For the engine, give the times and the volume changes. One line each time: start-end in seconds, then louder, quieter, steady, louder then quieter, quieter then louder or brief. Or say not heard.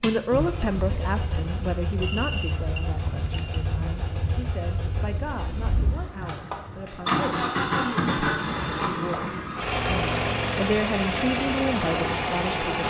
0.0-12.8 louder.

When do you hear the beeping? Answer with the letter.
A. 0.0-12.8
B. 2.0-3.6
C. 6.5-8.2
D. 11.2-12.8
B.